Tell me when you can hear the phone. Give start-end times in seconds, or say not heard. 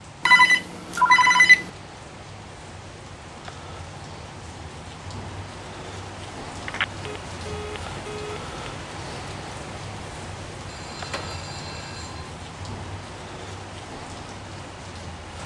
0.2-1.7, 6.7-8.7, 10.7-12.3.